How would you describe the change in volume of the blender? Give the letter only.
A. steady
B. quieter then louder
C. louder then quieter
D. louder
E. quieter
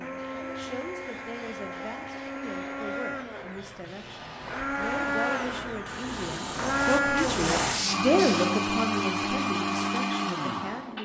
D.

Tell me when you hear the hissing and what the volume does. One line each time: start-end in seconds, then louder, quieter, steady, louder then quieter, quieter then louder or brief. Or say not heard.
0.1-8.5 louder.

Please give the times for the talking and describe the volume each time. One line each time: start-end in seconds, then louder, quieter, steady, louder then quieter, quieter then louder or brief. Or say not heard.
0.0-10.9 louder then quieter.